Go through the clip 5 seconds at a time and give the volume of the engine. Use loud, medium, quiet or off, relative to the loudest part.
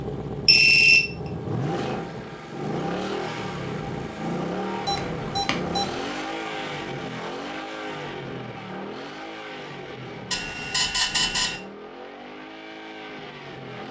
loud, loud, medium.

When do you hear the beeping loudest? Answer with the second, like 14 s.
1 s.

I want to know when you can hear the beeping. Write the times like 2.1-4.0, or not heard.
0.5-1.1, 4.8-6.0, 10.3-11.6.